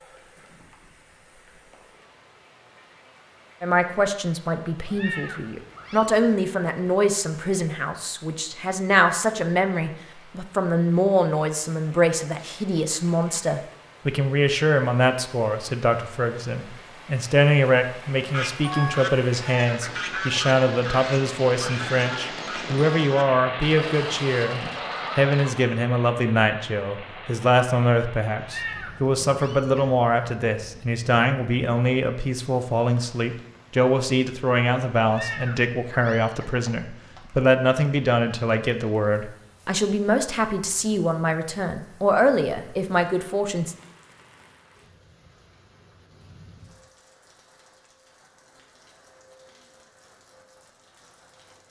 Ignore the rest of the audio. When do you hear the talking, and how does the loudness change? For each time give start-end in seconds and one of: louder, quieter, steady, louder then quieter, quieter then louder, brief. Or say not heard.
3.6-43.8 steady.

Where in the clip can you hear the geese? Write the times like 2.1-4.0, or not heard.
18.2-25.7.